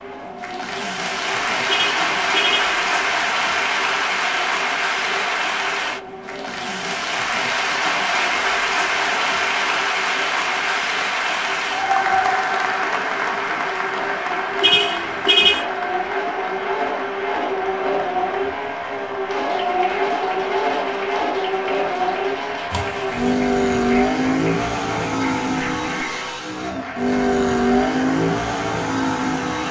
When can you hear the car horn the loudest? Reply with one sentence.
The volume of the car horn peaks at 15 seconds.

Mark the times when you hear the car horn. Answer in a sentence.
You can hear the car horn from 1.6 to 2.8 s, from 14.6 to 15.7 s and from 22.7 to 23.4 s.